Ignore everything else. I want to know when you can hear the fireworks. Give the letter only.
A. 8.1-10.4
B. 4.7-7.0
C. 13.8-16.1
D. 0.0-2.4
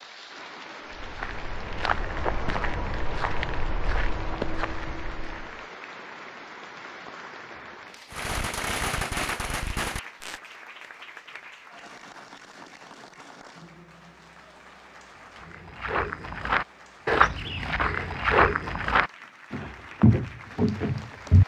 A.